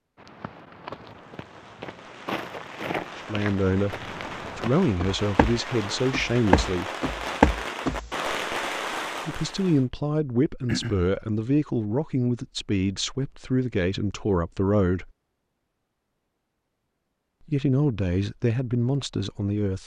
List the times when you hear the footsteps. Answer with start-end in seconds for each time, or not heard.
0.1-8.1.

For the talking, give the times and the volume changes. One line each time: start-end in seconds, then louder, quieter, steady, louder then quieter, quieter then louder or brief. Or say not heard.
3.1-4.0 brief
4.5-6.8 brief
9.2-15.1 steady
17.4-19.8 brief.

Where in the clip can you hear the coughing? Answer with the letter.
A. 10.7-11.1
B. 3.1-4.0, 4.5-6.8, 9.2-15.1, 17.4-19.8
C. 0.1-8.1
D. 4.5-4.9
A.